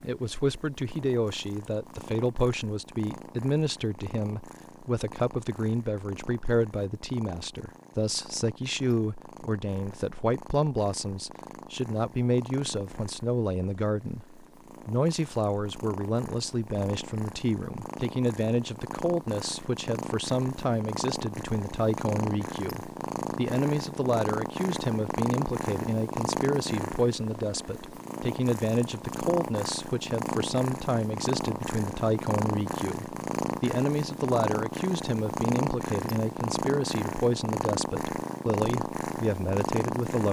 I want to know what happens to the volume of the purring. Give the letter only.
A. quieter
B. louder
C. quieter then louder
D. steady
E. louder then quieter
B.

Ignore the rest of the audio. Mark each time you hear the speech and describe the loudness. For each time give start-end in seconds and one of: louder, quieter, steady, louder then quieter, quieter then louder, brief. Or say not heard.
0.0-40.2 steady.